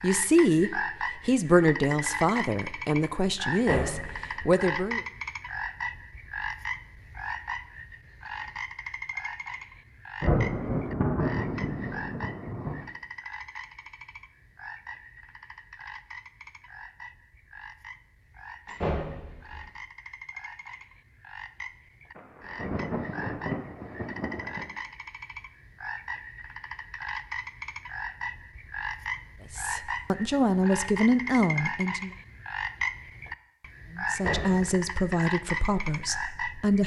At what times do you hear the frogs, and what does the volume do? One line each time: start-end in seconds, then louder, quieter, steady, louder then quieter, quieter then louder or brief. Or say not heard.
0.0-36.8 quieter then louder.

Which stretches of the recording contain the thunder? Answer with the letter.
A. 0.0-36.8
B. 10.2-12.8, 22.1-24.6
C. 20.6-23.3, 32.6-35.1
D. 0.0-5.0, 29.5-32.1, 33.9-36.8
B.